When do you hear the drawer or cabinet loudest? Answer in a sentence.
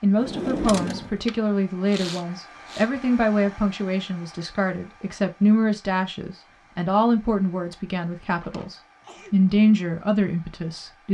The volume of the drawer or cabinet peaks at 1 second.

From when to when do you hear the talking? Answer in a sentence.
You can hear the talking from 0.0 to 11.0 s.